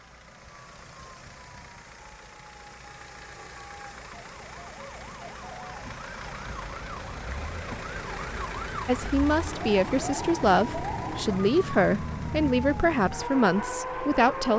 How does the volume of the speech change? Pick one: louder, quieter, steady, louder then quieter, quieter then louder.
steady.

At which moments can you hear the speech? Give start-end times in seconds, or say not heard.
8.8-14.5.